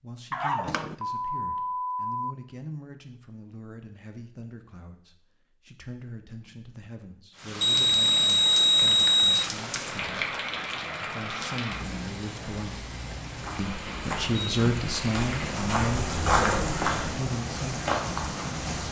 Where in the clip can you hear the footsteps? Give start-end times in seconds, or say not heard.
13.3-18.6.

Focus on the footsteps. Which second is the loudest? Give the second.
16 s.